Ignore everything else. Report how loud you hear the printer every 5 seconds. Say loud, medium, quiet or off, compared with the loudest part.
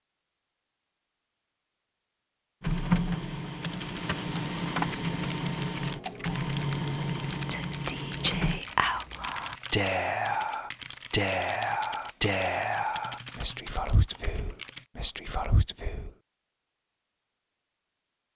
loud, loud, off, off.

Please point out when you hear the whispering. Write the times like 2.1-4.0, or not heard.
7.5-16.1.